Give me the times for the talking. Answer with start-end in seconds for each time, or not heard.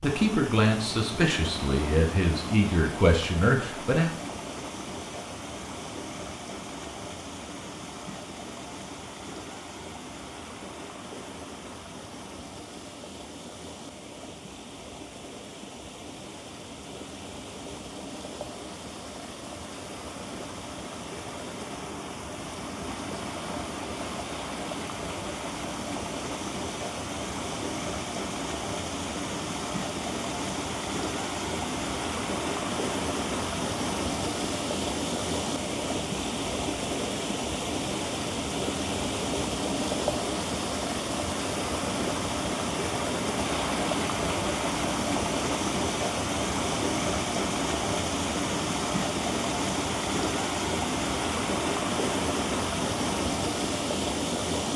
0.0-4.1.